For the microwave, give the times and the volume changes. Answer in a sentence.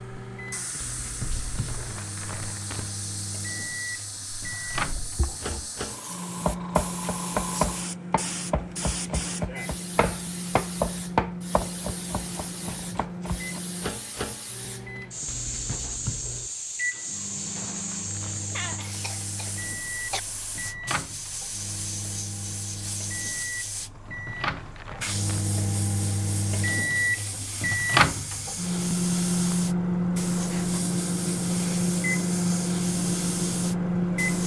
You can hear the microwave from 0.0 to 34.4 s, getting louder.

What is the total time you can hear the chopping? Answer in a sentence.
The chopping can be heard for 7 seconds in total.